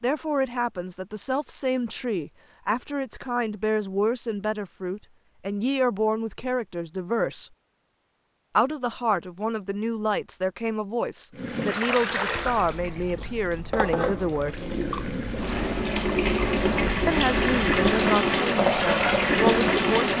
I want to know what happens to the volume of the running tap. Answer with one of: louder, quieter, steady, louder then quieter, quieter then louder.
louder.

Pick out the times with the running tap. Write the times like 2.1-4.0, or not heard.
11.3-20.1.